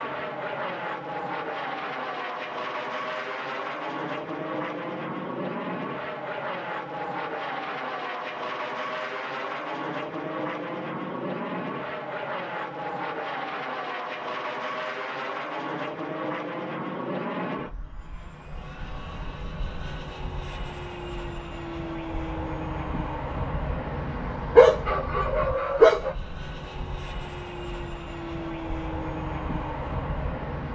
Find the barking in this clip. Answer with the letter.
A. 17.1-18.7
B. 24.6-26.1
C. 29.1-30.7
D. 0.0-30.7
B.